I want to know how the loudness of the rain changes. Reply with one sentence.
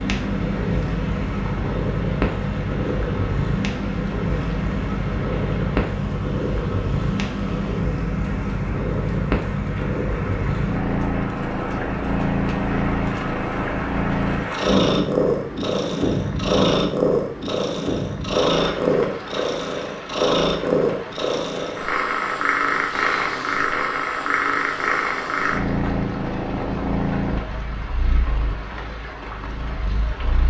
The loudness of the rain goes up, then down.